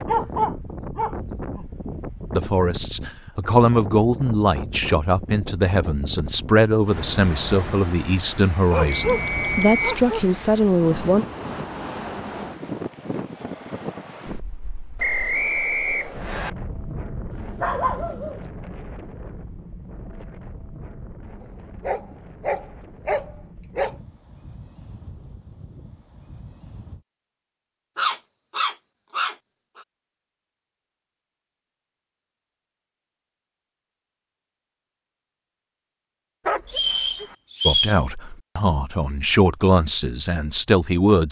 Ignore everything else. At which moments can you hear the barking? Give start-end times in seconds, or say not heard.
0.1-1.6, 8.7-10.2, 17.3-18.4, 21.8-23.9, 27.9-29.9, 36.5-37.4.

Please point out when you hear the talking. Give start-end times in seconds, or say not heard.
2.3-11.2, 37.6-41.2.